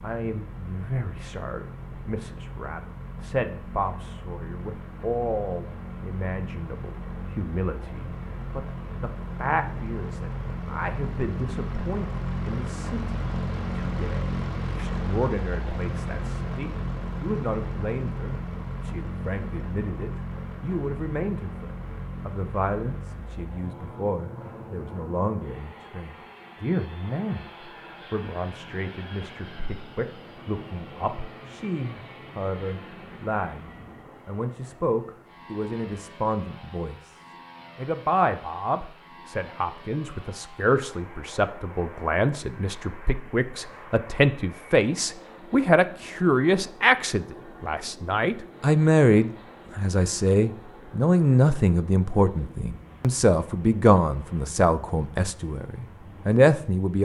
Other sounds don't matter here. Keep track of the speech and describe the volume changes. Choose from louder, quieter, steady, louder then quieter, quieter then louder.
louder.